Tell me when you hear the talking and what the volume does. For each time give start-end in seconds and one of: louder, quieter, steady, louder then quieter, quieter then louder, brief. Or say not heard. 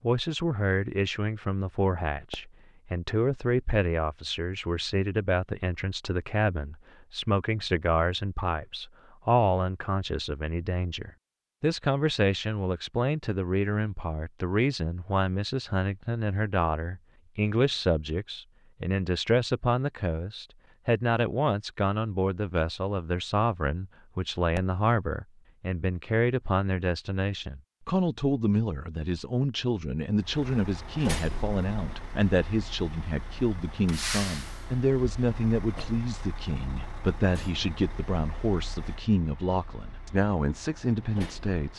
0.0-41.7 steady.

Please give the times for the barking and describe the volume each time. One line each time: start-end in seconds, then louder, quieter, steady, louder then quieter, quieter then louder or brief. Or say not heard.
not heard.